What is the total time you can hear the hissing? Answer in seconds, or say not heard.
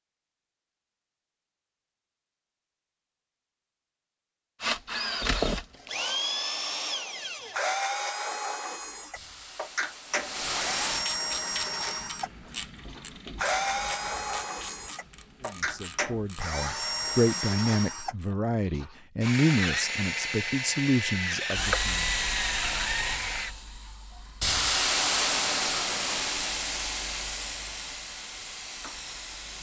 10 s.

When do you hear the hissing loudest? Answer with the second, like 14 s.
25 s.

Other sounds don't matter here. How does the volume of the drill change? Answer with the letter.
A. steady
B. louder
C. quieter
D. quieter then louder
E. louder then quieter
A.